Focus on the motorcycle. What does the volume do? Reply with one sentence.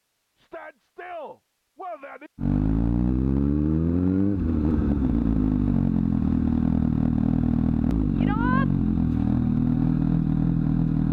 The loudness of the motorcycle stays about the same.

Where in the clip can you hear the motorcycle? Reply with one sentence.
You can hear the motorcycle from 2.4 to 11.0 s.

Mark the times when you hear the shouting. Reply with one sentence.
The shouting can be heard from 0.3 to 2.3 s and from 8.2 to 8.7 s.